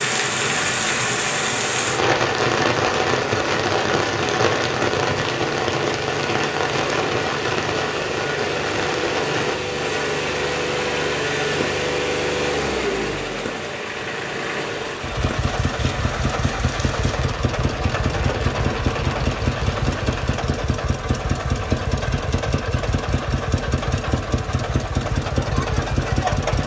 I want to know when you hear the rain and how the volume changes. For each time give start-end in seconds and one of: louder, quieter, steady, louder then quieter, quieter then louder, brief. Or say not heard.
0.0-20.4 quieter.